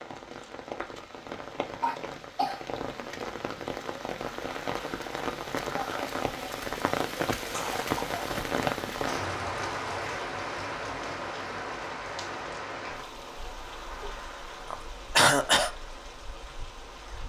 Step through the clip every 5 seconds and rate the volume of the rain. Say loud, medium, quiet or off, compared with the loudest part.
medium, loud, medium, quiet.